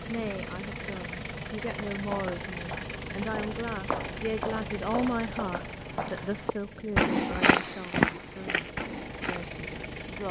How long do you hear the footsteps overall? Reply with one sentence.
The footsteps can be heard for 8 seconds in total.